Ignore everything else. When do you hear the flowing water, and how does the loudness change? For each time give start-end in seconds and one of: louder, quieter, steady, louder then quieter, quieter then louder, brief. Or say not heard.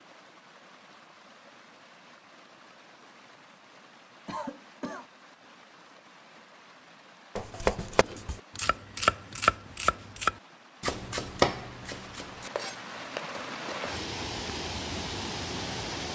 0.0-16.1 louder.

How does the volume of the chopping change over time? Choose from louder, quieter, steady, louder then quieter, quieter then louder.
louder then quieter.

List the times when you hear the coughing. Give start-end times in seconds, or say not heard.
4.2-5.0.